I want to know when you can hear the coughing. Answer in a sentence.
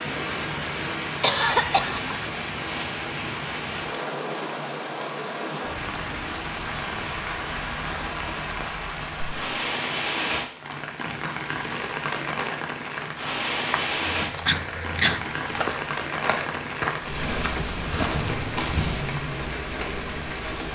You can hear the coughing from 1.2 to 2.3 s and from 14.2 to 15.2 s.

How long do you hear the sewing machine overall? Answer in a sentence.
You can't hear the sewing machine here.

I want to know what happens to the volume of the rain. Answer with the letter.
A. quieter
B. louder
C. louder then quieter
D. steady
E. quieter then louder
D.